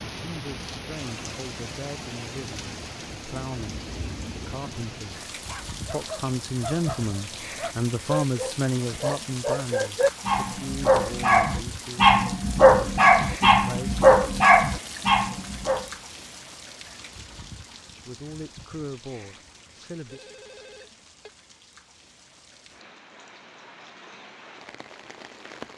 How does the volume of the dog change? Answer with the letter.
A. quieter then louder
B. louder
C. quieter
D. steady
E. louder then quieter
B.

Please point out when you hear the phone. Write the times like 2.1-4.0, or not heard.
20.1-21.3.